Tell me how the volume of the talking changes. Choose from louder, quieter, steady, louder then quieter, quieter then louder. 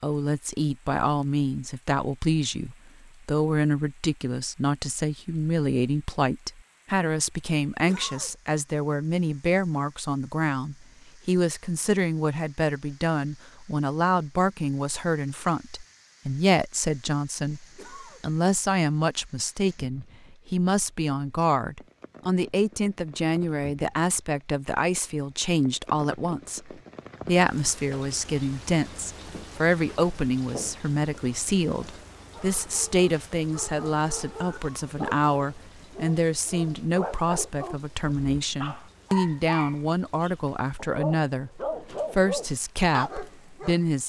steady.